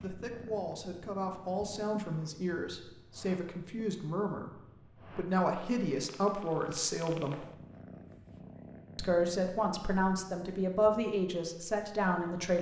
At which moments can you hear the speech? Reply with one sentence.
The speech can be heard from 0.0 to 7.4 s and from 8.9 to 12.5 s.